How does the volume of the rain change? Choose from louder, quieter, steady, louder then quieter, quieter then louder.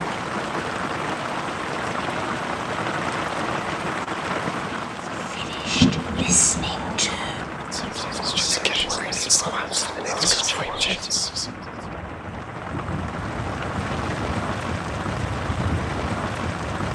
quieter then louder.